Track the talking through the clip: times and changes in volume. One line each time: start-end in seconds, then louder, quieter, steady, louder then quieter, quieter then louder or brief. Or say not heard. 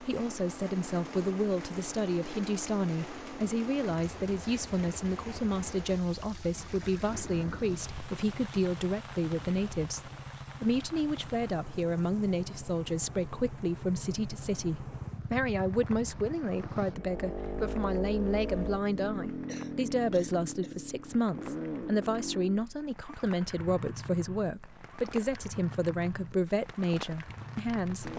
0.0-28.1 steady.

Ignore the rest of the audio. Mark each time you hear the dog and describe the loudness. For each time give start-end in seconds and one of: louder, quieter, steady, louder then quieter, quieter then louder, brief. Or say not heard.
not heard.